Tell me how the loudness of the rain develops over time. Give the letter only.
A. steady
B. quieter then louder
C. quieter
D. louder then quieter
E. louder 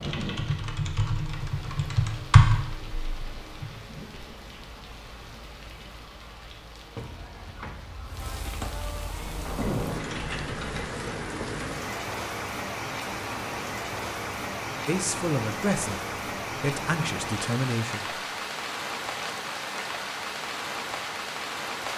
E.